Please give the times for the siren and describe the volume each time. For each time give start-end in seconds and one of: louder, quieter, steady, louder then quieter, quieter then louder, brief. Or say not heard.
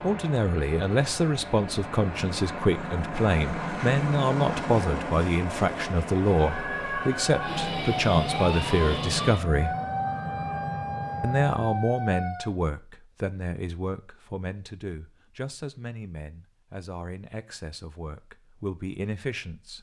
6.3-12.6 steady.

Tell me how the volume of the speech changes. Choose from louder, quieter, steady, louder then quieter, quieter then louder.
quieter.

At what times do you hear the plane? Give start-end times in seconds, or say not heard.
0.0-11.6.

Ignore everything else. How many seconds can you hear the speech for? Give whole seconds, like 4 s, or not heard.
18 s.